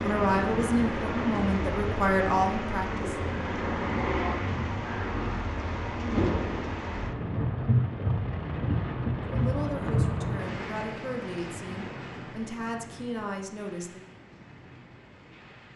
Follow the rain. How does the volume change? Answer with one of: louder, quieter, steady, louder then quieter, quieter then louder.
quieter.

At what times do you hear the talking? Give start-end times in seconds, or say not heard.
0.0-3.1, 9.2-14.1.